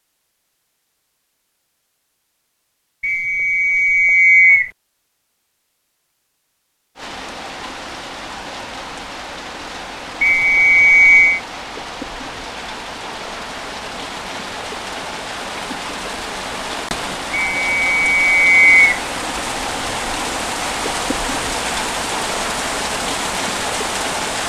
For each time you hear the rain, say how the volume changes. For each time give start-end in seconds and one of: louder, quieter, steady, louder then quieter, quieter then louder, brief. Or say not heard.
7.0-24.4 louder.